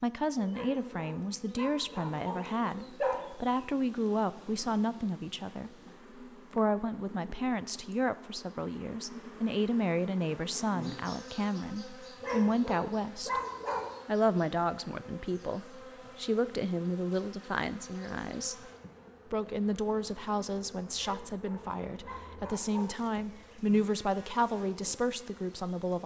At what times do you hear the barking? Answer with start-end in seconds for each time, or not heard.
0.5-3.2, 12.2-13.9, 21.0-23.1.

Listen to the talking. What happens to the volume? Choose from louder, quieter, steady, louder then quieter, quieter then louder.
steady.